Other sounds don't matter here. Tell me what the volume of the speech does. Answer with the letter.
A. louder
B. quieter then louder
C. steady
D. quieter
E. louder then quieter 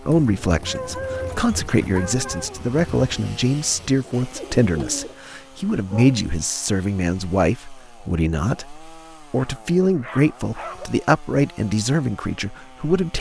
C.